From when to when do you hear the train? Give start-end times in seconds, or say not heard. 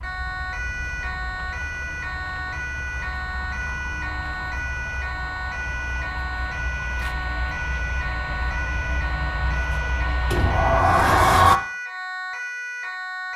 0.0-10.8.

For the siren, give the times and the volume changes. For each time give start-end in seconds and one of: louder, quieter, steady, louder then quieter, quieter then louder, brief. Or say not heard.
0.0-13.3 steady.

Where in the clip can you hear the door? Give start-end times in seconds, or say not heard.
10.3-11.6.